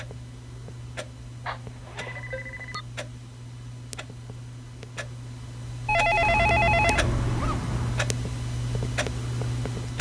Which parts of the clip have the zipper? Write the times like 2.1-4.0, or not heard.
1.7-2.3, 6.2-8.1.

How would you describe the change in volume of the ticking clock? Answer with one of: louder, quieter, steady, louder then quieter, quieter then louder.
louder.